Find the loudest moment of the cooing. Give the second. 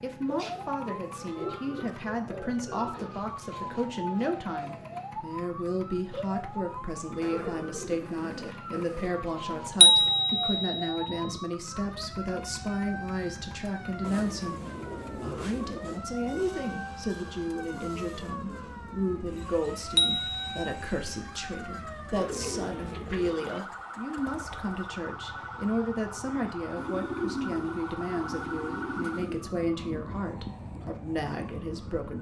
27 s.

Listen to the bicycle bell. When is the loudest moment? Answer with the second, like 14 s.
10 s.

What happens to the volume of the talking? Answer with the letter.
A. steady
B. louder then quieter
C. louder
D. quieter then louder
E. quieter
A.